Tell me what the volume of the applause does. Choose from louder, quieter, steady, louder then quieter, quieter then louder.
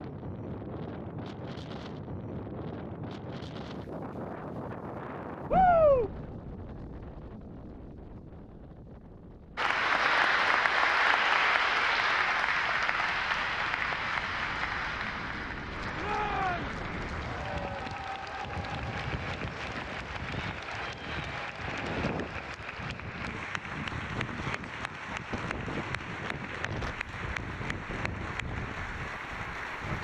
quieter.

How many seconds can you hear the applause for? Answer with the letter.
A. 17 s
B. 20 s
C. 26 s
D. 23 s
B.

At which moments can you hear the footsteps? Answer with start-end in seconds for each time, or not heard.
not heard.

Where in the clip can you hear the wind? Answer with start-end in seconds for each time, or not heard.
0.0-29.9.